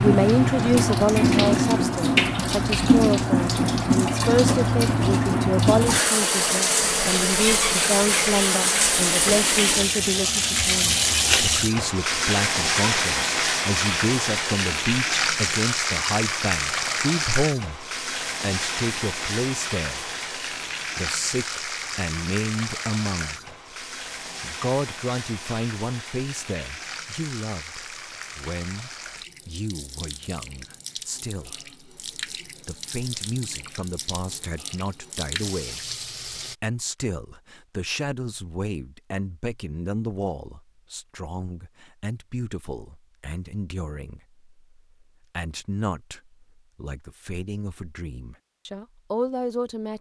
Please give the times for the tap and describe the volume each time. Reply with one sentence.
The tap can be heard from 0.0 to 36.5 s, getting quieter.